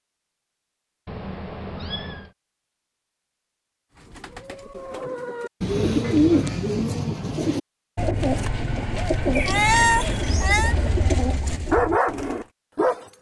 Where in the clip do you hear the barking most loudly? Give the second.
12 s.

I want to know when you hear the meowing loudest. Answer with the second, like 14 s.
10 s.